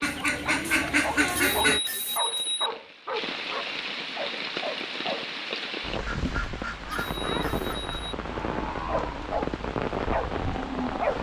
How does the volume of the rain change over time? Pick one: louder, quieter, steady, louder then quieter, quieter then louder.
louder.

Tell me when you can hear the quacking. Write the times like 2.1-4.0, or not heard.
0.0-1.8, 6.0-8.0.